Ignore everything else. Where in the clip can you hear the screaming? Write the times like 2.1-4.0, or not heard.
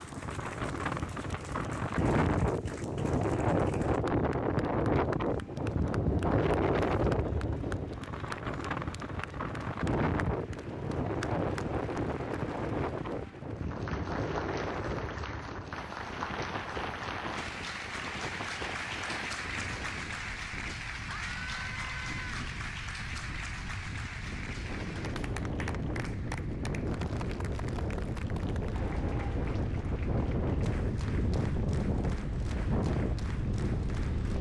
21.1-22.4.